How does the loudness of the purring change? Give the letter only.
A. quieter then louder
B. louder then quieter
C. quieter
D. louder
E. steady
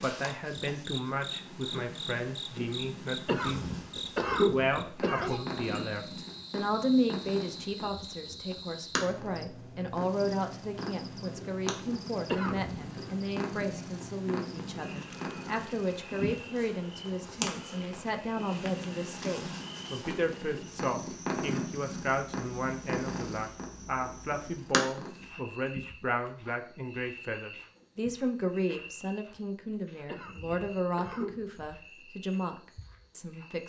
D.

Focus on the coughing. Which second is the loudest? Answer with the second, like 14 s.
4 s.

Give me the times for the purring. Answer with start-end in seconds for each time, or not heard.
0.0-25.2.